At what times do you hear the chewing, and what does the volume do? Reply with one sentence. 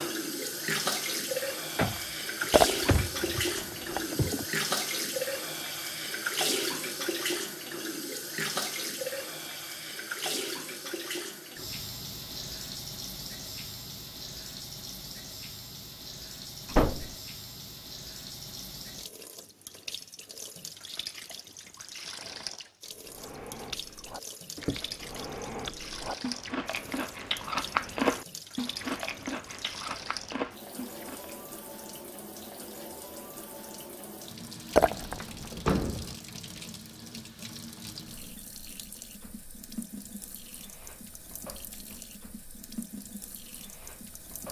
You can hear the chewing from 23.1 to 31.4 s, getting louder then quieter.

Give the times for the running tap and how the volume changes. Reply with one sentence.
You can hear the running tap from 0.0 to 44.4 s, getting quieter.